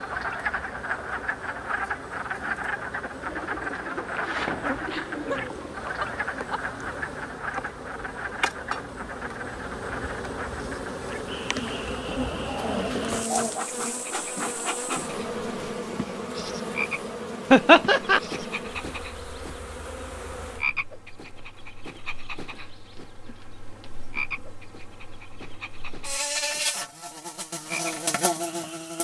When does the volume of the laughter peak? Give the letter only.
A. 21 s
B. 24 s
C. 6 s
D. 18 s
D.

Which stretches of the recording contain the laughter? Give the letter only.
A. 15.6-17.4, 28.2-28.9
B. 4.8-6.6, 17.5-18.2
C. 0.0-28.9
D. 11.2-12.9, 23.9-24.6
B.